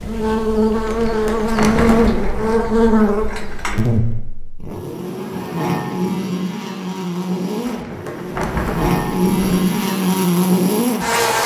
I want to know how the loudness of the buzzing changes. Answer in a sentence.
The loudness of the buzzing goes down, then up.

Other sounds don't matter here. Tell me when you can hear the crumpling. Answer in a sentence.
The crumpling can be heard from 0.8 to 2.4 s and from 7.7 to 9.6 s.